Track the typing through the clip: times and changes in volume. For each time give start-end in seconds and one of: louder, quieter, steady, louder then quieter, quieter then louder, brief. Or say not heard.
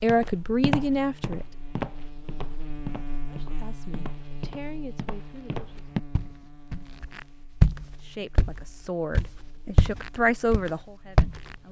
not heard.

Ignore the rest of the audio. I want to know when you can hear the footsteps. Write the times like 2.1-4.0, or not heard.
0.0-11.6.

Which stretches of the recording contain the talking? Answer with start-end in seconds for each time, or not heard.
0.0-1.4, 3.3-5.8, 8.1-11.6.